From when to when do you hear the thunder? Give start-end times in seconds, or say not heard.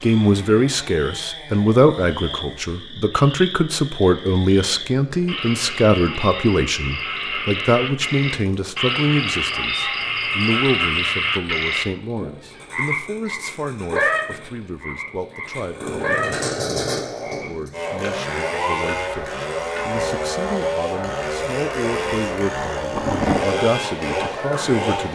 22.9-23.4.